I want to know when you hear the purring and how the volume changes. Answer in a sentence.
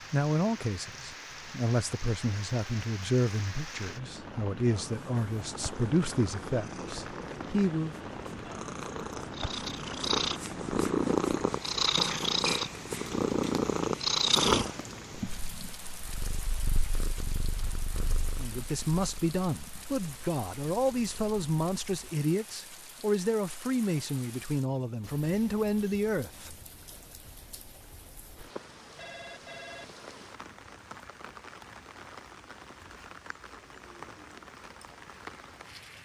You can hear the purring from 4.7 to 22.1 s, getting louder then quieter.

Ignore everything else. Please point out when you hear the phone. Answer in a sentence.
You can hear the phone from 28.6 to 29.9 s.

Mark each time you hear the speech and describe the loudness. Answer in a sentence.
The speech can be heard from 0.1 to 8.0 s, at a steady volume; and from 18.4 to 26.6 s, at a steady volume.